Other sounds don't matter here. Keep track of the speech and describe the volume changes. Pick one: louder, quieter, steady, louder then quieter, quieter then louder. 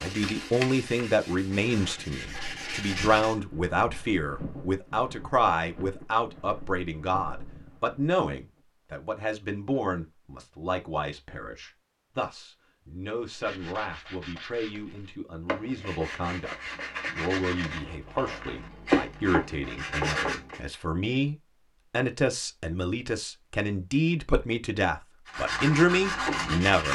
quieter then louder.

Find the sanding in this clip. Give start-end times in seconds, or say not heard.
0.0-3.4, 13.3-20.6, 25.2-26.9.